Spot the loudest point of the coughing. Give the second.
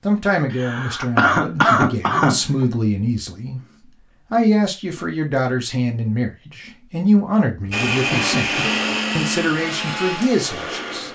2 s.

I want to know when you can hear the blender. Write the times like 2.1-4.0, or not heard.
7.7-11.0.